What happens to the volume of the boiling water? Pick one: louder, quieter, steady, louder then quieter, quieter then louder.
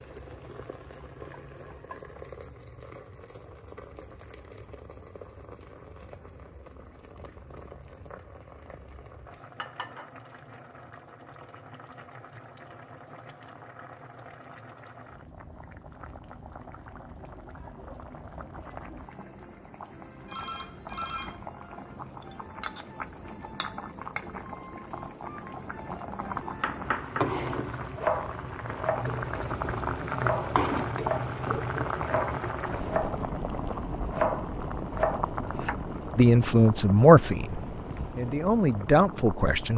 louder.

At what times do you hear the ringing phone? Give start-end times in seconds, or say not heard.
20.2-21.5.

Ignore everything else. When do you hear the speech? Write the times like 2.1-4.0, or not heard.
36.1-39.7.